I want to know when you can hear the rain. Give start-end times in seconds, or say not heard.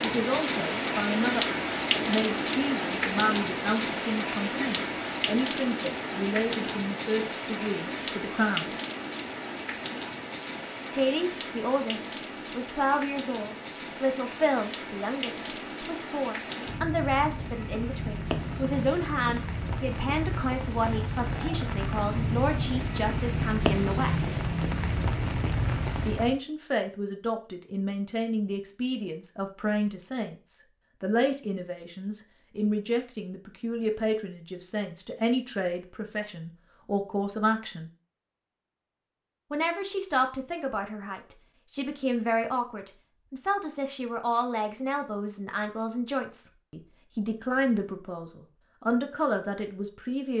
0.0-26.4.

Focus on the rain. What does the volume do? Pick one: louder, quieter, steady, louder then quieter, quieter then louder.
quieter then louder.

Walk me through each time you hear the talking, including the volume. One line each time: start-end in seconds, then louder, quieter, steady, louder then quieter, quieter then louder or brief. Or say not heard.
0.0-8.7 steady
10.9-24.3 steady
26.1-37.9 steady
39.5-50.3 steady.